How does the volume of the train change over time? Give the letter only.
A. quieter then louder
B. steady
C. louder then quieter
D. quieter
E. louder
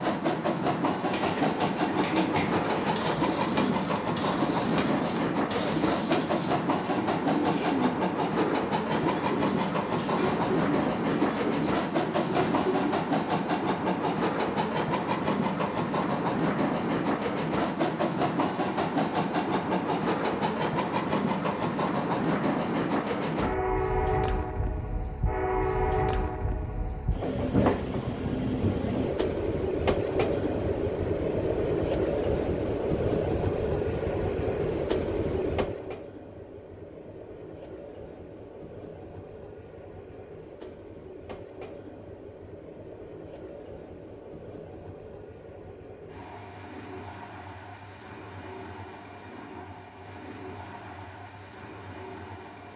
D.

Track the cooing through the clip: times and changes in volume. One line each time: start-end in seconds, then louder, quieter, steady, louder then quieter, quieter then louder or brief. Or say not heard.
1.1-13.0 steady.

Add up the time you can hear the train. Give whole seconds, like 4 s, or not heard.
53 s.